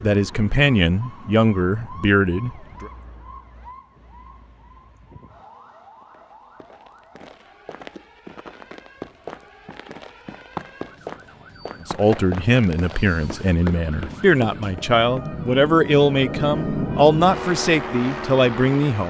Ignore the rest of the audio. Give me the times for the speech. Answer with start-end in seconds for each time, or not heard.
0.0-2.9, 11.8-19.0.